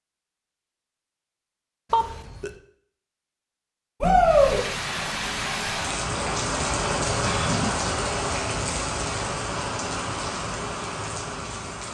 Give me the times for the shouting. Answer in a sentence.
The shouting can be heard from 4.0 to 4.6 s.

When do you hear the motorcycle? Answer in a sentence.
The motorcycle can't be heard in this clip.